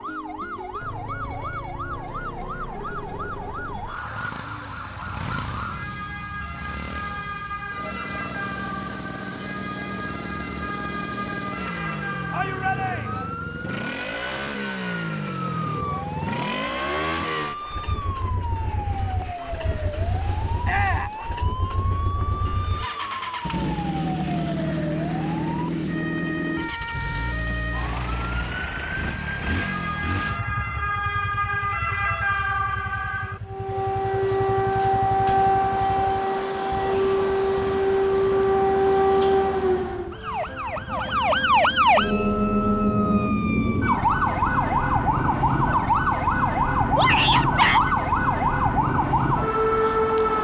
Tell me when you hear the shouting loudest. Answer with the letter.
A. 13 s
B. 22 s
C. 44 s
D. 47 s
D.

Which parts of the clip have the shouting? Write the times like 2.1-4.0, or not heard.
12.3-13.2, 20.6-21.1, 47.0-48.0.